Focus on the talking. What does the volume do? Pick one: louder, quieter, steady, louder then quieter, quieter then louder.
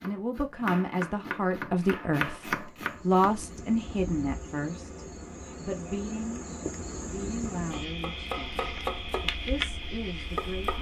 quieter.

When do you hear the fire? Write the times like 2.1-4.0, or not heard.
not heard.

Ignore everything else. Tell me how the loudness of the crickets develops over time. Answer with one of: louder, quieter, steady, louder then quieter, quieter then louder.
louder.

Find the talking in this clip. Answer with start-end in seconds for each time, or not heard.
0.0-10.7.